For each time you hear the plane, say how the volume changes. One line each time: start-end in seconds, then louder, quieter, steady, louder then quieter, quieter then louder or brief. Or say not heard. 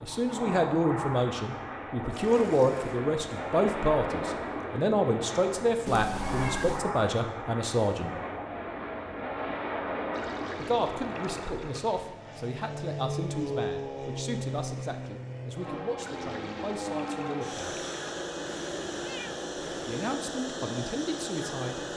0.0-21.9 steady.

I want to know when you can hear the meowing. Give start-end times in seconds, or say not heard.
5.8-6.8, 18.4-20.0.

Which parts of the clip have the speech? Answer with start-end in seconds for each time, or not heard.
0.0-8.2, 10.6-17.8, 19.8-21.9.